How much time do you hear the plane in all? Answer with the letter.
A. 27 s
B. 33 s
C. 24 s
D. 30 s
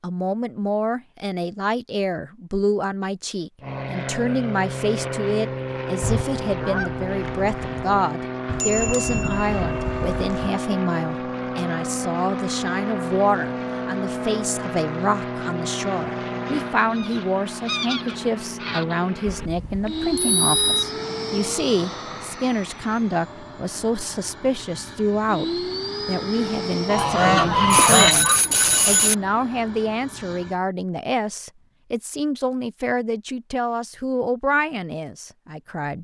A.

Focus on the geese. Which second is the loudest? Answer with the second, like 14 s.
28 s.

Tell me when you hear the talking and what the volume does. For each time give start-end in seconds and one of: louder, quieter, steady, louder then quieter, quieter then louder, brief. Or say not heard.
0.0-35.9 steady.